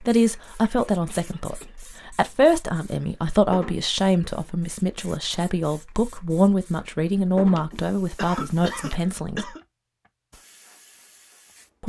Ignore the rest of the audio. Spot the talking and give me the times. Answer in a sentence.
The talking can be heard from 0.0 to 9.5 s.